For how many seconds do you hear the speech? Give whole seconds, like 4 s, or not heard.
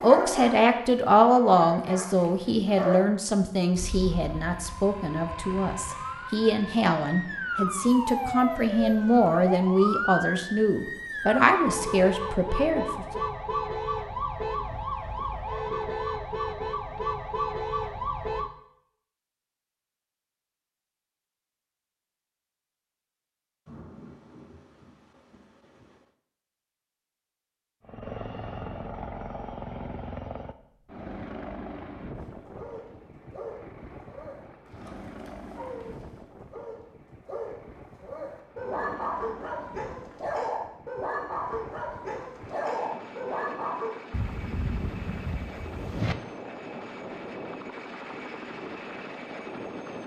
13 s.